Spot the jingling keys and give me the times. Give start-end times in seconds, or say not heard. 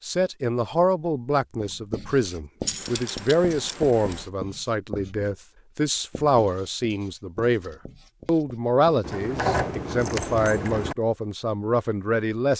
2.6-4.2, 9.0-10.9.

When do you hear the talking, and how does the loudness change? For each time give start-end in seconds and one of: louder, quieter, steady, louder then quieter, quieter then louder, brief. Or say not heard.
0.0-12.5 steady.